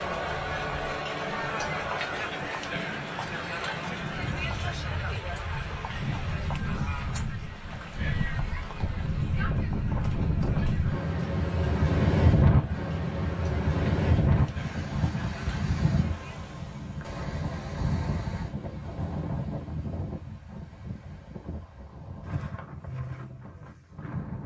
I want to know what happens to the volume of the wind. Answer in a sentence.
The loudness of the wind goes up, then down.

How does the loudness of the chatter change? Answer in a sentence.
The volume of the chatter goes down.